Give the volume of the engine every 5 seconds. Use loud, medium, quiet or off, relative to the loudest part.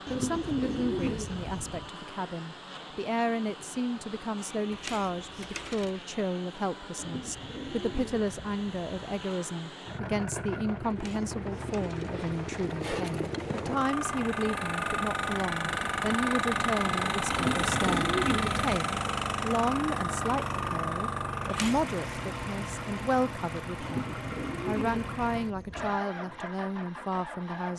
quiet, quiet, medium, loud, medium, medium.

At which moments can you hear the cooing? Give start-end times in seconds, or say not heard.
0.1-1.9, 7.0-9.3, 17.3-18.9, 23.8-26.0.